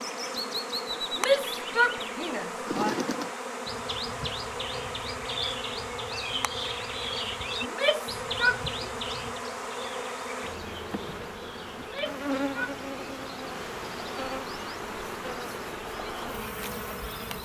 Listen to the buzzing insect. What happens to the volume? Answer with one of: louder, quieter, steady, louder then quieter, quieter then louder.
steady.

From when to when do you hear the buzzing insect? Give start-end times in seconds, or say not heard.
0.0-17.4.